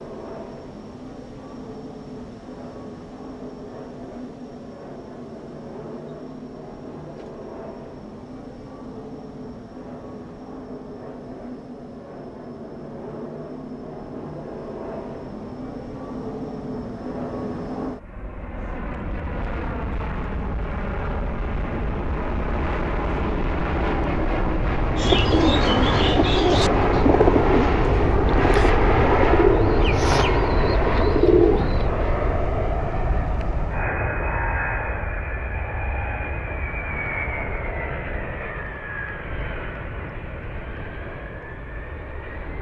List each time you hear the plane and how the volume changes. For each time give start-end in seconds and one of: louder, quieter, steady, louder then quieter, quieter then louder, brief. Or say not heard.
0.0-42.5 louder then quieter.